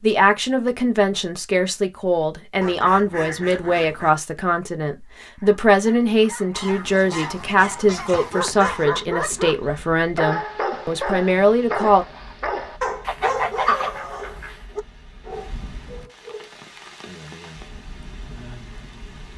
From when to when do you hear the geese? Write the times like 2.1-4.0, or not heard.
2.6-4.2, 6.5-8.9, 13.1-14.6.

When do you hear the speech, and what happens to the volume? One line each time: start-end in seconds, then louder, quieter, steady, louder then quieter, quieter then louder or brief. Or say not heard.
0.0-12.1 steady.